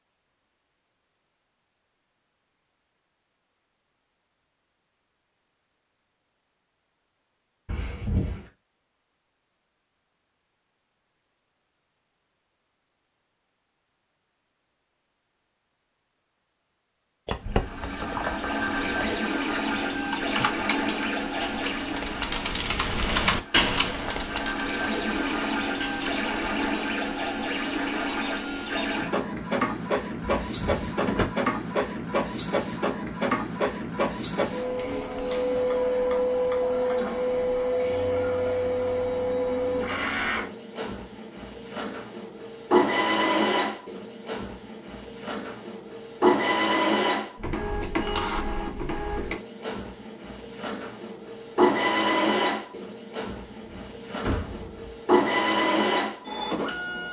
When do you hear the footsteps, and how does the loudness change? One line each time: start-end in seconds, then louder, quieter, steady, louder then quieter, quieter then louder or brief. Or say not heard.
not heard.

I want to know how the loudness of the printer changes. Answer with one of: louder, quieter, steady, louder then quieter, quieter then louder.
steady.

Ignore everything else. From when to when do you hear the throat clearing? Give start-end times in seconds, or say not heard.
not heard.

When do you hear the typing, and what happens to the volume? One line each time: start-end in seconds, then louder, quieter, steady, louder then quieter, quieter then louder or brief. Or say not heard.
17.2-26.8 louder then quieter.